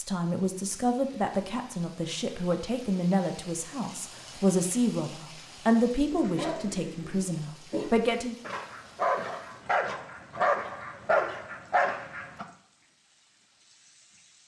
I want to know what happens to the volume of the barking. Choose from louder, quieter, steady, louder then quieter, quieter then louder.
louder.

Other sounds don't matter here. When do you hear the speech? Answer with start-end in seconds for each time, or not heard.
0.0-8.3.